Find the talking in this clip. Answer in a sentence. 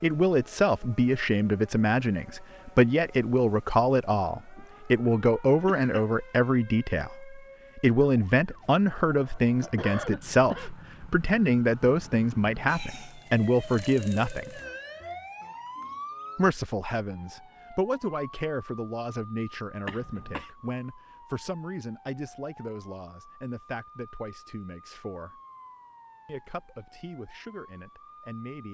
You can hear the talking from 0.0 to 14.6 s, from 16.4 to 25.4 s and from 26.2 to 28.6 s.